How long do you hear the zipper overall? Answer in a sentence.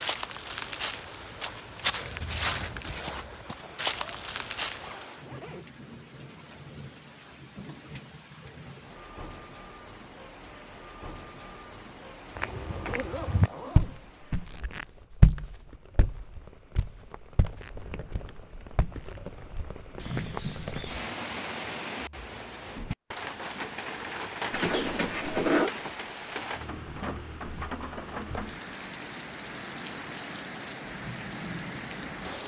You can hear the zipper for 5 seconds altogether.